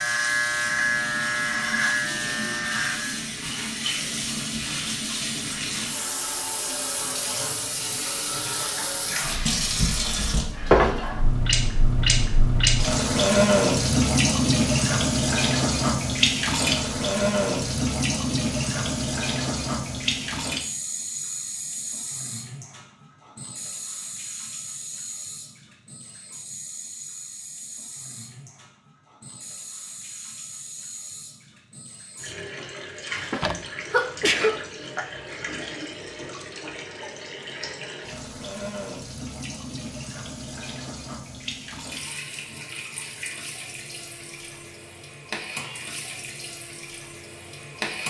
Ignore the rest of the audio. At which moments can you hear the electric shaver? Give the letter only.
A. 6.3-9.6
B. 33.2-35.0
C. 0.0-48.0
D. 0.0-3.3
D.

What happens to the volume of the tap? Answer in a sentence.
The loudness of the tap goes up, then down.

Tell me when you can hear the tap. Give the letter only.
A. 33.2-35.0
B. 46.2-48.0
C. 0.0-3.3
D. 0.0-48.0
D.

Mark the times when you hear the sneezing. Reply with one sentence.
You can hear the sneezing from 33.2 to 35.0 s.